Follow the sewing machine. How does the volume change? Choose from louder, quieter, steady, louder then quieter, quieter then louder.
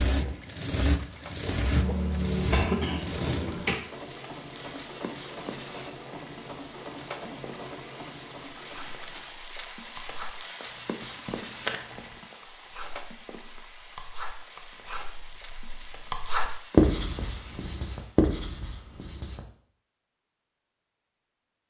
quieter.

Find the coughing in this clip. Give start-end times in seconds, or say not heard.
1.8-3.8.